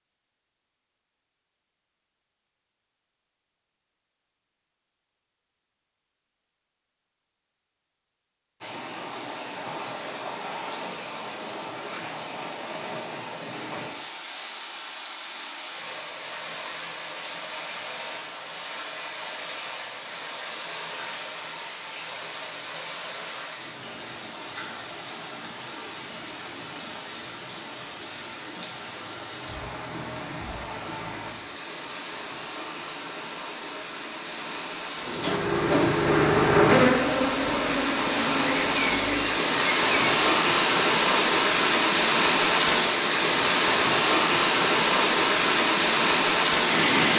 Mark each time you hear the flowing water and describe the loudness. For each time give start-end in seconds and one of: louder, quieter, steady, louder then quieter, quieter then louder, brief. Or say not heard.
8.6-47.1 louder.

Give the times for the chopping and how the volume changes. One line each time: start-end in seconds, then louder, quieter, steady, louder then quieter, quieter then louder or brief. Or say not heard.
not heard.